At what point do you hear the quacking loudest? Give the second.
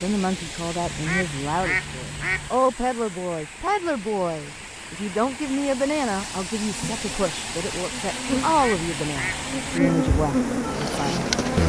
2 s.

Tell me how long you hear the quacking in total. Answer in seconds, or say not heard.
3 s.